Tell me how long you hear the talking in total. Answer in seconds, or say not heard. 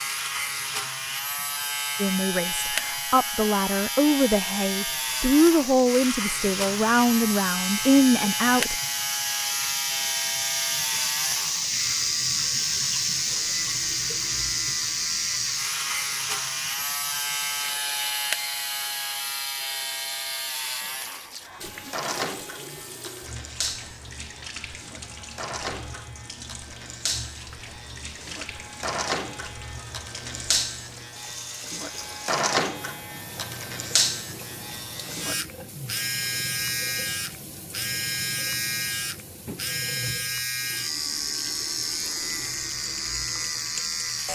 7 s.